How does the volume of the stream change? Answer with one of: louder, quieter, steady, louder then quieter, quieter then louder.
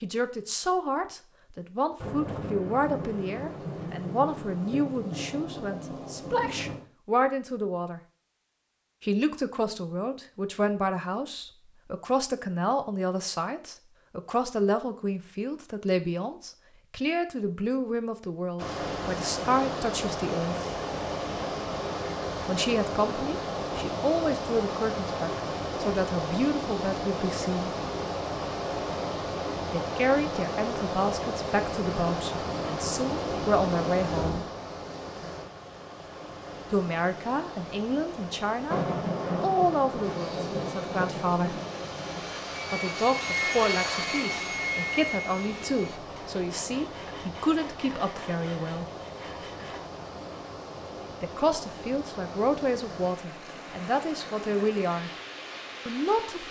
quieter.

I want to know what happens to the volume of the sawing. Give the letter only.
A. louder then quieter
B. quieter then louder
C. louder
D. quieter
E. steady
A.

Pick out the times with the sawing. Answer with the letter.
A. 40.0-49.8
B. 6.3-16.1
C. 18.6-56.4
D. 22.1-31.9
A.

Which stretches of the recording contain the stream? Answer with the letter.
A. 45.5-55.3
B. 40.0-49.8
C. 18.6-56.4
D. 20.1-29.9
C.